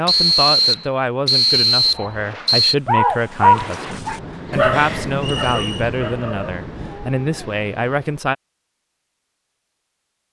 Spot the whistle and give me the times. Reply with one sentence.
The whistle can be heard from 0.1 to 2.8 s and from 5.2 to 5.8 s.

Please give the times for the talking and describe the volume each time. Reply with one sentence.
You can hear the talking from 0.0 to 8.3 s, at a steady volume.